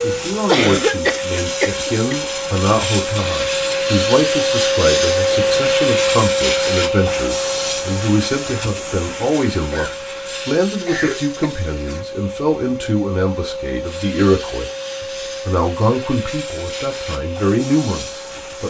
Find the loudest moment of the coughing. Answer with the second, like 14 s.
1 s.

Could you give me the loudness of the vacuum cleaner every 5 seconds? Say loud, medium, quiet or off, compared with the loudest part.
loud, loud, medium, medium.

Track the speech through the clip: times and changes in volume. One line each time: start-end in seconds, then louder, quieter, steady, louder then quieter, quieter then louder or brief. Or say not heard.
0.0-18.6 steady.